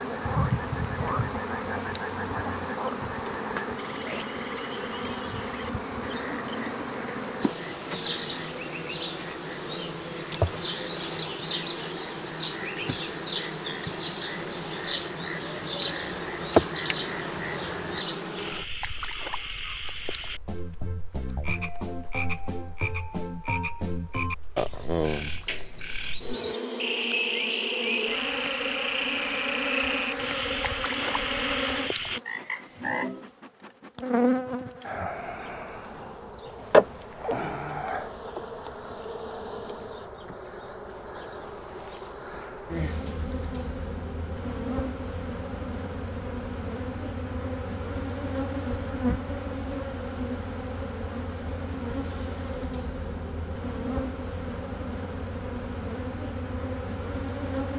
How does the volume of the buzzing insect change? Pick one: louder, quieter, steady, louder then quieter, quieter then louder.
steady.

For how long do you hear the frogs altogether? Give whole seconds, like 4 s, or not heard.
33 s.